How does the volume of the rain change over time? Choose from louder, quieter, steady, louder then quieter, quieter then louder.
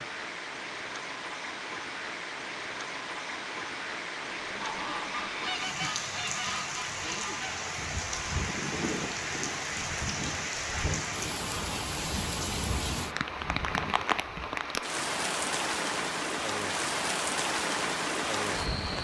louder.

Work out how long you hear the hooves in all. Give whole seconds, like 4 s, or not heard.
not heard.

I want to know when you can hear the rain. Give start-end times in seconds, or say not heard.
0.0-19.0.